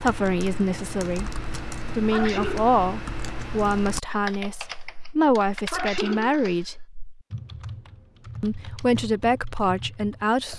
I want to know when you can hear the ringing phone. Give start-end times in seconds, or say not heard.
not heard.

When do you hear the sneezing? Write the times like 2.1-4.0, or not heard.
2.1-2.8, 5.7-6.3.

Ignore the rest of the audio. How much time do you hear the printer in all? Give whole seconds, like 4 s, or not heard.
not heard.